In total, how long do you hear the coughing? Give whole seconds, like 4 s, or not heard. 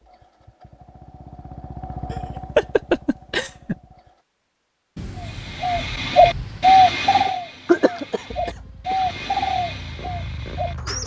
3 s.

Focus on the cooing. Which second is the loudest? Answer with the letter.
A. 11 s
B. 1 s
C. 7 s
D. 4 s
C.